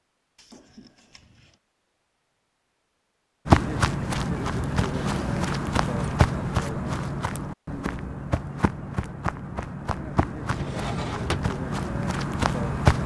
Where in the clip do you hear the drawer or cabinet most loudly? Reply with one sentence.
The loudest moment of the drawer or cabinet is at 11 seconds.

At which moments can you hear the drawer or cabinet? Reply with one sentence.
The drawer or cabinet can be heard from 0.3 to 1.6 s, from 4.9 to 6.2 s and from 10.5 to 11.4 s.